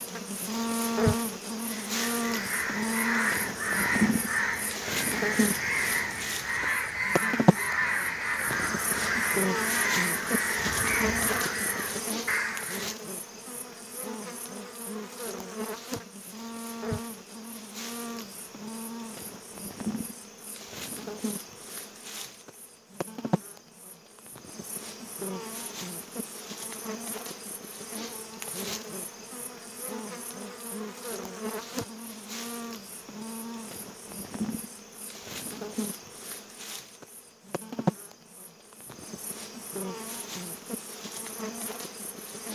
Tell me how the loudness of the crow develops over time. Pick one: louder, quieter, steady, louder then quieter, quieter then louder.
steady.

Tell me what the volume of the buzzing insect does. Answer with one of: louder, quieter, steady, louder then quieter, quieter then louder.
quieter.